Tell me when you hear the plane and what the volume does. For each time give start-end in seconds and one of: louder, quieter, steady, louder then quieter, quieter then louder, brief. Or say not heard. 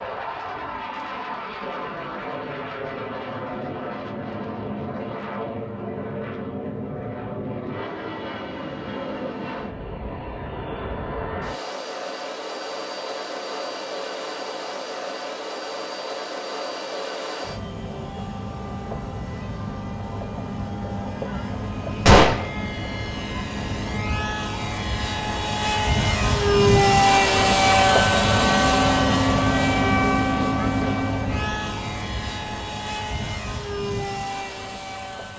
0.0-35.3 louder.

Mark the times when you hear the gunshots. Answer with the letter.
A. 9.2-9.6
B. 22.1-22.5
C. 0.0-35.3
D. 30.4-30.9
B.